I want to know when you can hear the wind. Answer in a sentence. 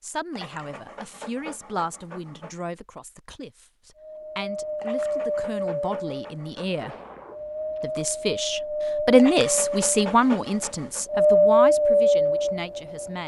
You can hear the wind from 4.0 to 13.2 s.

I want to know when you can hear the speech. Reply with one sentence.
The speech can be heard from 0.0 to 7.0 s and from 7.8 to 13.2 s.